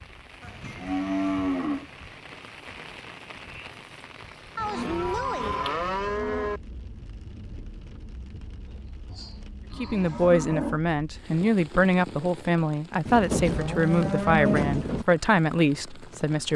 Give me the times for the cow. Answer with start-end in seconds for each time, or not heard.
0.4-1.9, 4.5-6.6, 8.7-10.8, 13.1-15.1.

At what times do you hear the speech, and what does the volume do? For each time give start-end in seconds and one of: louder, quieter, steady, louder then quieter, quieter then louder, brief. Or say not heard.
9.8-16.5 steady.